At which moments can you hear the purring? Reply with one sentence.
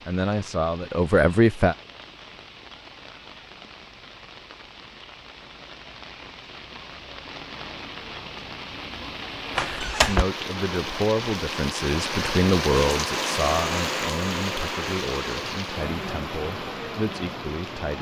You can't hear the purring here.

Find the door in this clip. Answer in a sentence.
You can hear the door from 9.6 to 10.2 s.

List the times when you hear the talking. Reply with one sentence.
You can hear the talking from 0.1 to 1.8 s and from 10.1 to 17.9 s.